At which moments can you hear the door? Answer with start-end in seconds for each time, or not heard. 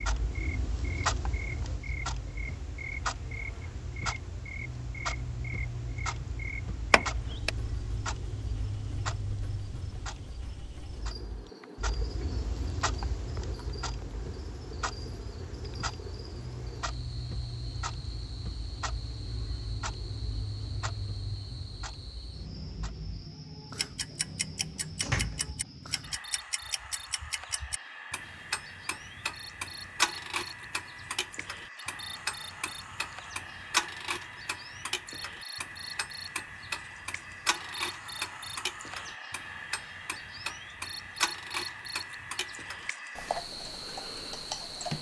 6.9-7.5, 23.7-25.5.